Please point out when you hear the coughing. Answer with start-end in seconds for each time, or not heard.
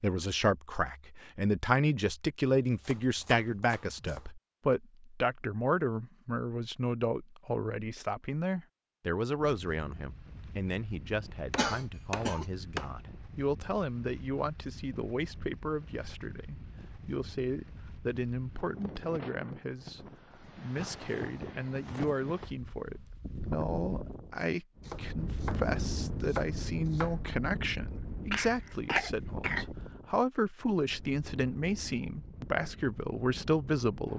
11.6-12.4, 28.3-29.6.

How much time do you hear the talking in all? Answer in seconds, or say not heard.
34 s.